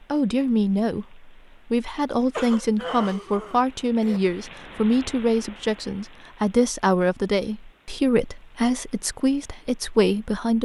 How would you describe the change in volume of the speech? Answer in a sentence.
The loudness of the speech stays about the same.